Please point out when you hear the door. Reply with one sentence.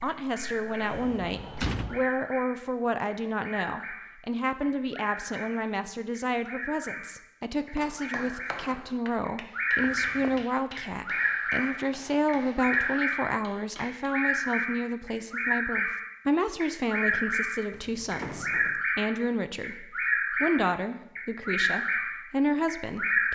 The door can be heard from 0.9 to 2.0 s, from 9.8 to 10.4 s and from 17.7 to 18.9 s.